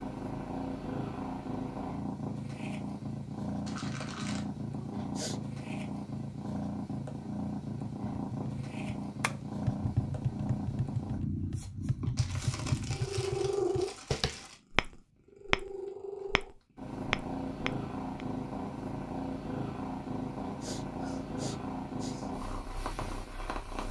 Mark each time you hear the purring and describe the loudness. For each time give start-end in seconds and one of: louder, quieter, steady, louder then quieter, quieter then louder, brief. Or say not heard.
0.0-23.8 steady.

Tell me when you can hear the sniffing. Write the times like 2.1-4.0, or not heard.
4.8-5.4, 20.4-22.4.